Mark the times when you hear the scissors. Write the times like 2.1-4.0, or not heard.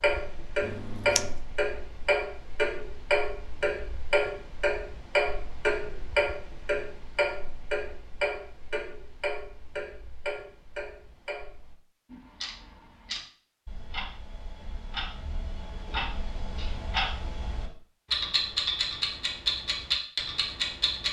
0.6-1.4.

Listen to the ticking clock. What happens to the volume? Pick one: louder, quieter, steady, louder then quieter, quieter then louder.
quieter then louder.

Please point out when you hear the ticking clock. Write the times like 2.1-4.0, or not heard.
0.0-21.0.